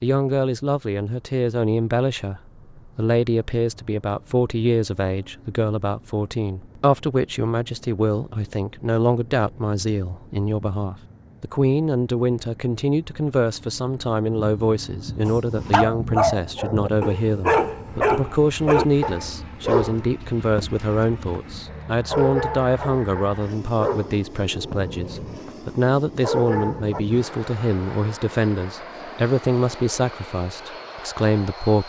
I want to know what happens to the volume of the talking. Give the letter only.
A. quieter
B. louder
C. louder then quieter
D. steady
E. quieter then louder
D.